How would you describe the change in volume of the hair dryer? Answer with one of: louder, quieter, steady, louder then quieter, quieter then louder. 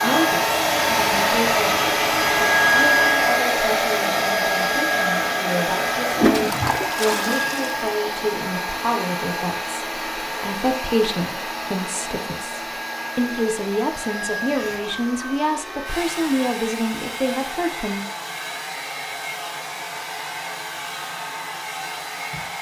quieter.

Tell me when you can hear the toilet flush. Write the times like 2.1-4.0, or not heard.
6.1-7.7.